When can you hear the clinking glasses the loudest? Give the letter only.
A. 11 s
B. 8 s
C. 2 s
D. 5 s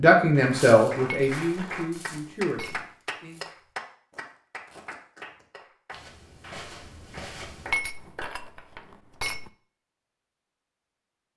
B.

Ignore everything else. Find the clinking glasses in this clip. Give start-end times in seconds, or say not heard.
1.1-2.9, 7.7-9.5.